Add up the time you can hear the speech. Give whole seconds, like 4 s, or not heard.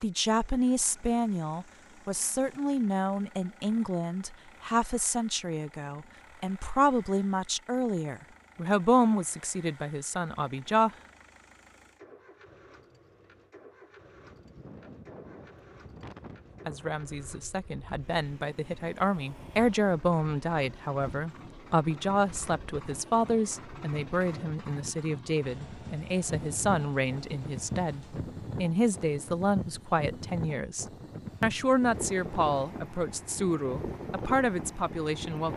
30 s.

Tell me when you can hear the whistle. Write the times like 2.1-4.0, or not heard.
not heard.